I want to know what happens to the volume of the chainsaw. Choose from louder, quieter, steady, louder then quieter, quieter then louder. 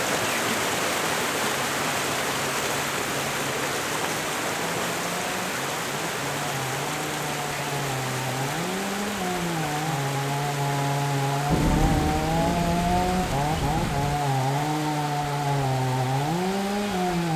louder.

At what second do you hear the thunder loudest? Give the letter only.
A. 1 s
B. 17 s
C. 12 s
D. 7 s
C.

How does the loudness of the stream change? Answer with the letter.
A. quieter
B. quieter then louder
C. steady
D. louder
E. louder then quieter
A.